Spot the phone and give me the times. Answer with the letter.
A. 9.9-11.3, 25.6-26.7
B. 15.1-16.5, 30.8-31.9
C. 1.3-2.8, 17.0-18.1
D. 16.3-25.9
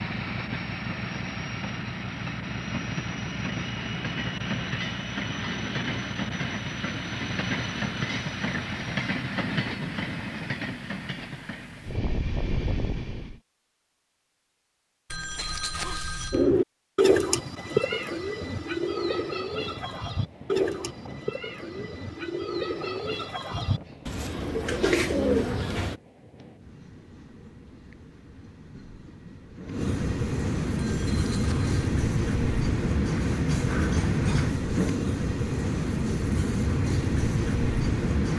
B.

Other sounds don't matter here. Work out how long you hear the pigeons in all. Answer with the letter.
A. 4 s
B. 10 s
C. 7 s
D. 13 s
B.